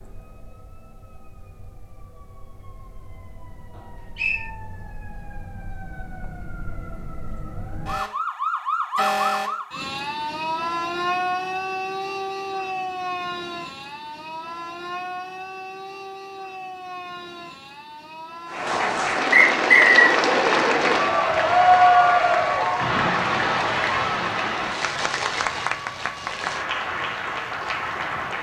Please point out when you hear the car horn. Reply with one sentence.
You can't hear the car horn here.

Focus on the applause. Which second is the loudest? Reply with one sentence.
The loudest moment of the applause is at 22 seconds.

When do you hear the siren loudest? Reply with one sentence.
The volume of the siren peaks at 9 seconds.